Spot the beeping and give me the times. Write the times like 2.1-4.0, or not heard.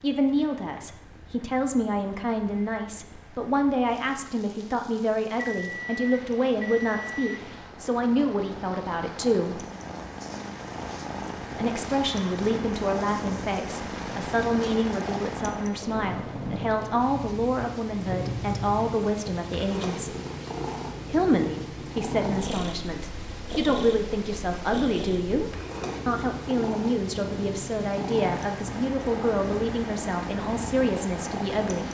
5.4-7.5.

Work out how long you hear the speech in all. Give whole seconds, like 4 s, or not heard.
29 s.